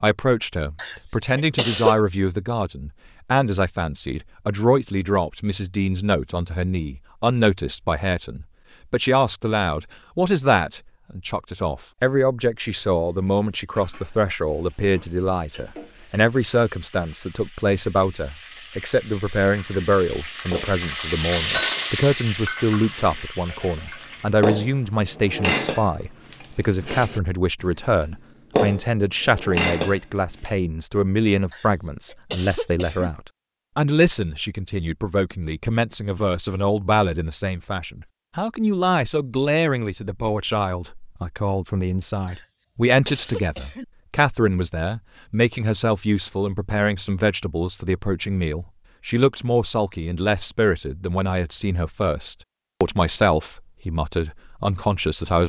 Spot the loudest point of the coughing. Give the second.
2 s.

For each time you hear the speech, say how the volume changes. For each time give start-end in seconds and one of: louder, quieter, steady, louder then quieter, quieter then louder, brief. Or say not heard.
0.0-55.4 steady.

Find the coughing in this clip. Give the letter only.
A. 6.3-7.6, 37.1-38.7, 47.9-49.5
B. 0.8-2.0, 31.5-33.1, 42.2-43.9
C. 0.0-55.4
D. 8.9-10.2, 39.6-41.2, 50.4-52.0
B.